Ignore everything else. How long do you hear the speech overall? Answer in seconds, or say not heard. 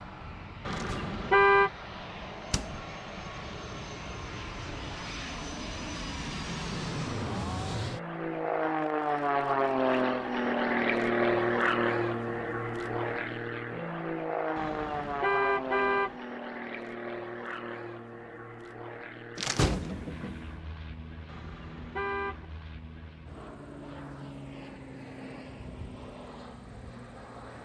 not heard.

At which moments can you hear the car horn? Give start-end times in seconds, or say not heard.
0.7-1.7, 14.6-16.1, 21.2-22.4.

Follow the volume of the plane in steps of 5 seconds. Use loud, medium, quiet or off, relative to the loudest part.
quiet, loud, loud, medium, quiet, quiet.